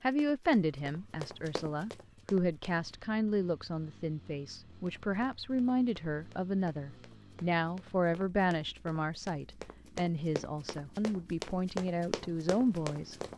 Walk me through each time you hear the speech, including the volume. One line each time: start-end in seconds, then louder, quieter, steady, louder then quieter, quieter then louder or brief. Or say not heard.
0.0-13.2 steady.